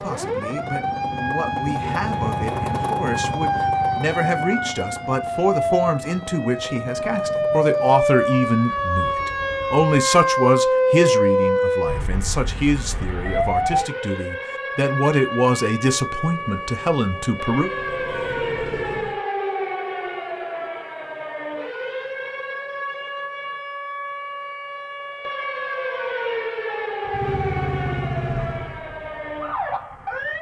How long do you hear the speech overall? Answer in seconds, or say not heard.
18 s.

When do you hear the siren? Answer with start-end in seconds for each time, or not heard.
0.0-30.3.